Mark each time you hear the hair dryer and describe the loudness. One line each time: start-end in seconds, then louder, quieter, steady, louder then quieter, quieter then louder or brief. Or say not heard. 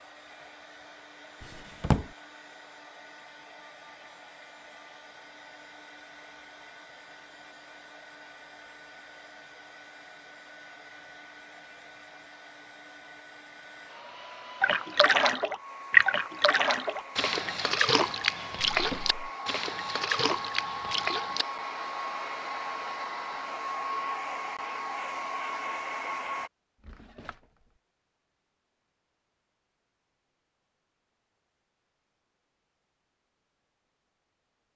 0.0-26.5 louder.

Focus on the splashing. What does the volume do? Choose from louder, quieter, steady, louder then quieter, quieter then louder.
quieter.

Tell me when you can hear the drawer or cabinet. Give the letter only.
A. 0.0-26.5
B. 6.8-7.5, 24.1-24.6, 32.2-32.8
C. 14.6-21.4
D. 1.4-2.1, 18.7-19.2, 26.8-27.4
D.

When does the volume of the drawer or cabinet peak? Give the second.
2 s.